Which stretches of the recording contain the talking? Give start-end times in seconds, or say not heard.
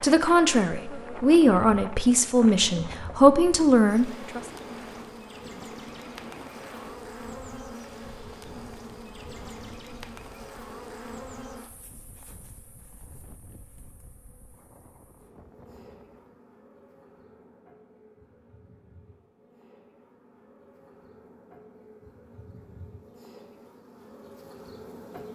0.0-4.4.